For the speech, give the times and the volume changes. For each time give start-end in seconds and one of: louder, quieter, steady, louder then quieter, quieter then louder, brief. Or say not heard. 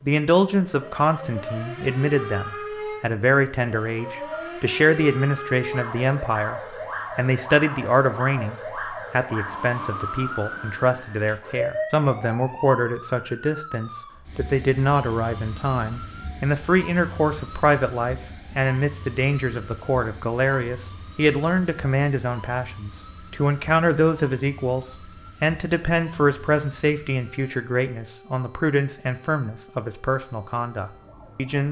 0.0-31.6 steady.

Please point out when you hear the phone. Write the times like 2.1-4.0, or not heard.
4.0-4.5.